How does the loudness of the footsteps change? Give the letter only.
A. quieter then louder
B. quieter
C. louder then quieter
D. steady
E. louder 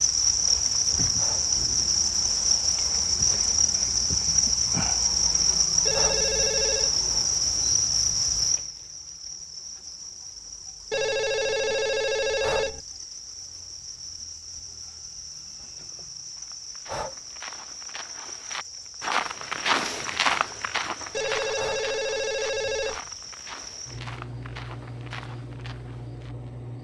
C.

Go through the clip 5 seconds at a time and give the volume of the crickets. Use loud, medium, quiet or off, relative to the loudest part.
loud, loud, quiet, quiet, quiet, quiet.